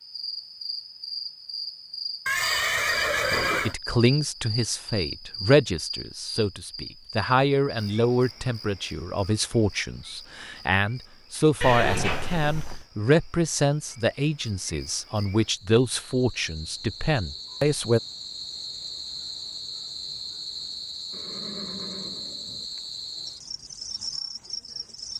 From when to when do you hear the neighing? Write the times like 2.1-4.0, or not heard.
2.2-3.8, 11.6-12.8, 21.1-22.6.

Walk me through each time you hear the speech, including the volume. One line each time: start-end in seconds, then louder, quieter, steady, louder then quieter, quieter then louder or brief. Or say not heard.
3.3-18.0 steady.